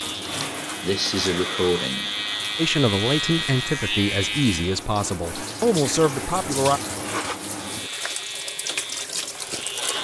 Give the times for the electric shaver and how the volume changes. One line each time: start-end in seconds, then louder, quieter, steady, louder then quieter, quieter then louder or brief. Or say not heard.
0.0-4.8 louder
7.5-10.0 brief.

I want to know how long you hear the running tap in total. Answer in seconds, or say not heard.
10 s.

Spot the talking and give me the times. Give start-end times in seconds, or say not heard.
2.5-6.8.